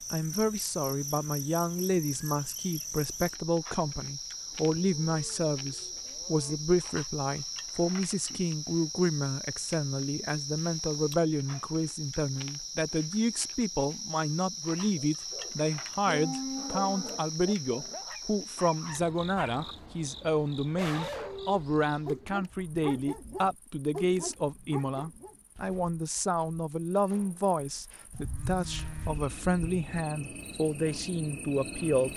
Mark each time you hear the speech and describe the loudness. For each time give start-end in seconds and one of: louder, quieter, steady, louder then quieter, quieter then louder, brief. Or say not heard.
0.1-32.1 steady.